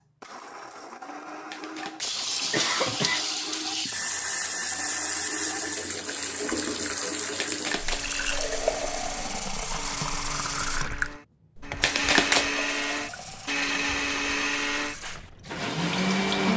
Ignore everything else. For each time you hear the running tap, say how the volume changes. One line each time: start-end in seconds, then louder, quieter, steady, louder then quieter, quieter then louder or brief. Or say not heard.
2.0-16.5 quieter.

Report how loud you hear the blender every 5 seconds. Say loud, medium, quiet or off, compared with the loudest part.
quiet, quiet, loud, loud.